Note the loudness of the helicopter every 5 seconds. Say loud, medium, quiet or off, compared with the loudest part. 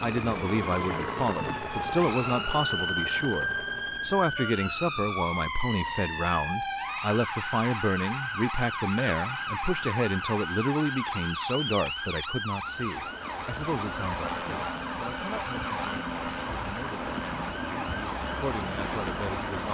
loud, off, loud, loud.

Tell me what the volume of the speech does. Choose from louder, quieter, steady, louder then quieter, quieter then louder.
quieter.